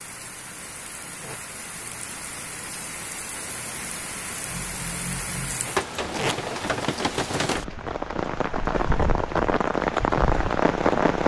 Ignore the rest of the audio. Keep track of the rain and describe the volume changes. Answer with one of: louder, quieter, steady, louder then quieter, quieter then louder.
louder.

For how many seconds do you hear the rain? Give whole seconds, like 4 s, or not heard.
11 s.